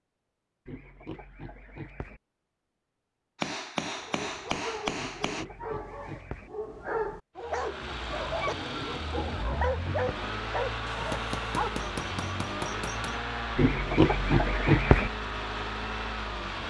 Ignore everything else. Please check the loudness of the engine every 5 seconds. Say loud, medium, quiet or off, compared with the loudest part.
off, loud, loud, loud.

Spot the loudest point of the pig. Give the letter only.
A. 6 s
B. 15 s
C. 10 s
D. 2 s
B.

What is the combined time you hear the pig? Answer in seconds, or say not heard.
6 s.